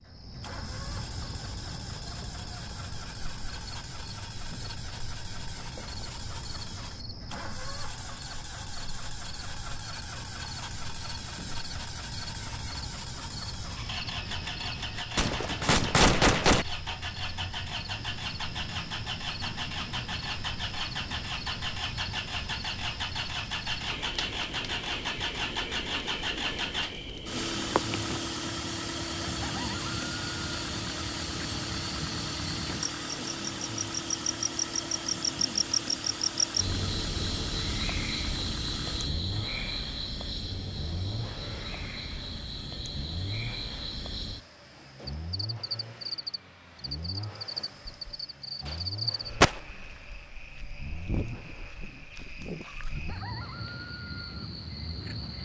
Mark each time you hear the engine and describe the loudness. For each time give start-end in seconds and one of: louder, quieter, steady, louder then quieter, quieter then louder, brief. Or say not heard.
0.0-55.4 louder then quieter.